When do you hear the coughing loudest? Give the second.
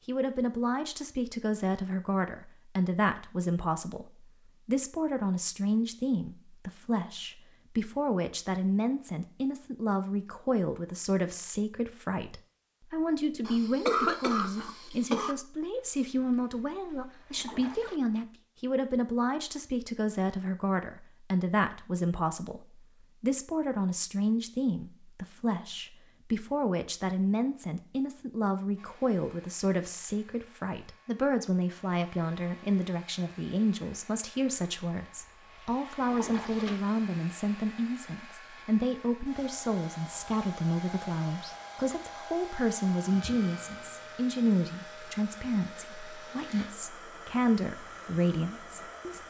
14 s.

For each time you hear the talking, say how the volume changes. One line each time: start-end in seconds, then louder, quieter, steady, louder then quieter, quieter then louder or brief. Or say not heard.
0.1-49.2 steady.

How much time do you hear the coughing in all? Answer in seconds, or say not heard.
2 s.